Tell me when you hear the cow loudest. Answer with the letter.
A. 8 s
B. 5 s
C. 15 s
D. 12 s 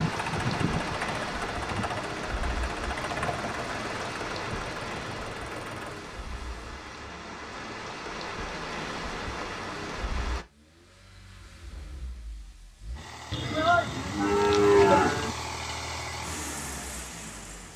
C.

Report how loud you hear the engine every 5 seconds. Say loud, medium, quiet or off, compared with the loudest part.
loud, medium, medium, loud.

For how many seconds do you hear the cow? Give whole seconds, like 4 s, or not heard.
2 s.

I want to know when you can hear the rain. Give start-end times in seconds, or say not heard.
0.0-10.4.